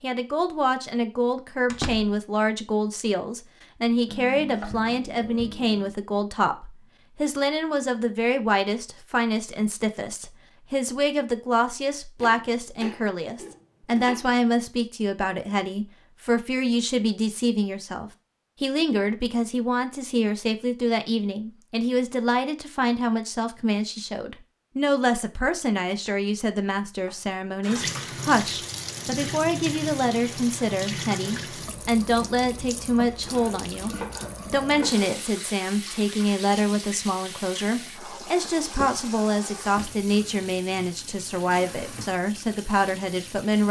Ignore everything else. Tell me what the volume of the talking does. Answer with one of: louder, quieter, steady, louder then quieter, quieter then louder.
steady.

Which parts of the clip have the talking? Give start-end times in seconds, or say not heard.
0.0-43.6.